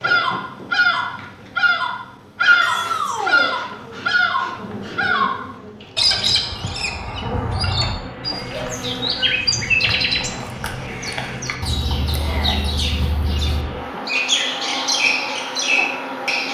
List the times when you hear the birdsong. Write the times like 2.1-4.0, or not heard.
0.0-16.4.